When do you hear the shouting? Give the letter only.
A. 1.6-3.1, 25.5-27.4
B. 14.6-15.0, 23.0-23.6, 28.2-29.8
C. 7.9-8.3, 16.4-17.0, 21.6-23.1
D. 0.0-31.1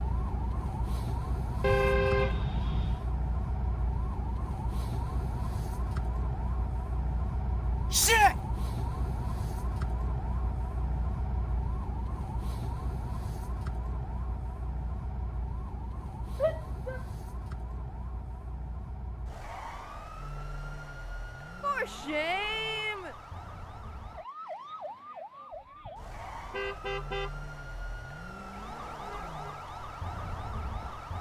C.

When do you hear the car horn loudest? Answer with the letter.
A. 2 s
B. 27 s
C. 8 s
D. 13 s
A.